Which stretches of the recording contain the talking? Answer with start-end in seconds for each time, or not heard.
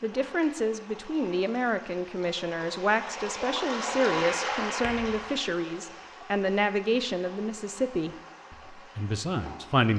0.0-9.9.